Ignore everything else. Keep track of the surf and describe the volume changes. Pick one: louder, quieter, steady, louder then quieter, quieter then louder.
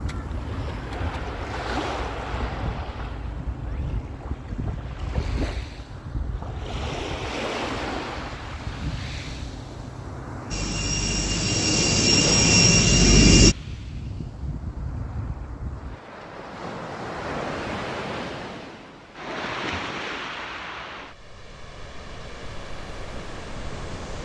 steady.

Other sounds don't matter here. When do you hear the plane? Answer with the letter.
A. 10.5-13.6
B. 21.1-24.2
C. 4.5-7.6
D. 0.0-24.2
A.